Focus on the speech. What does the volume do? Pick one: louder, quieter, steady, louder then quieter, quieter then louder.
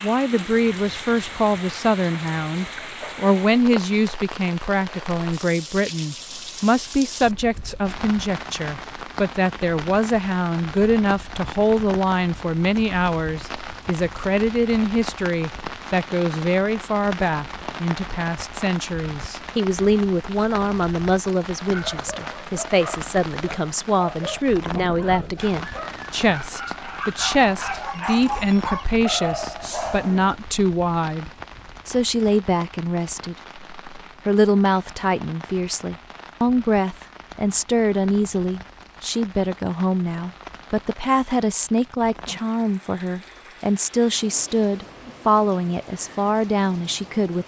steady.